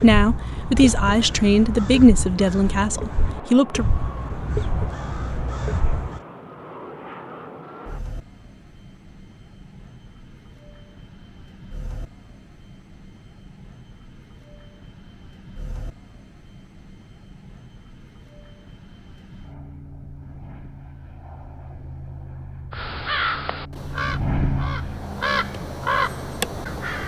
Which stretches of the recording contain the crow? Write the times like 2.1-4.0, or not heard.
0.0-6.2, 22.7-27.0.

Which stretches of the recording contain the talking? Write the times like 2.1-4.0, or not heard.
0.0-3.9.